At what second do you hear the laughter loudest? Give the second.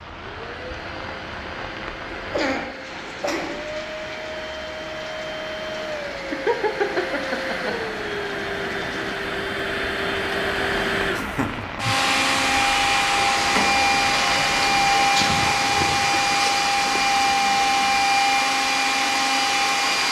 7 s.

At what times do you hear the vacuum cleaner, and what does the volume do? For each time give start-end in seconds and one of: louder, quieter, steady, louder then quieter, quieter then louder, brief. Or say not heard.
0.0-20.0 louder.